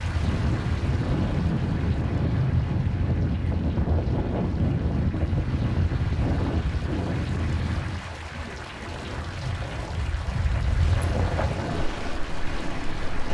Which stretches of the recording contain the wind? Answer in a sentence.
You can hear the wind from 0.0 to 13.3 s.